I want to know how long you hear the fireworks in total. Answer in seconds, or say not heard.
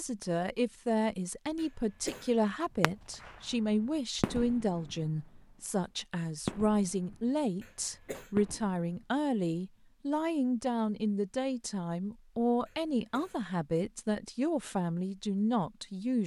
3 s.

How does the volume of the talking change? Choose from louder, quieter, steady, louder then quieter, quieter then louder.
steady.